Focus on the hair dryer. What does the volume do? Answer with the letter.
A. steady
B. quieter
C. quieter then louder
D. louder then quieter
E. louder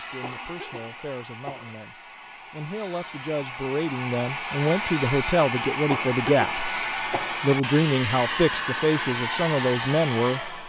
E.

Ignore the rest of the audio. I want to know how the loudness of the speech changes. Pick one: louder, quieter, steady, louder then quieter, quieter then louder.
louder.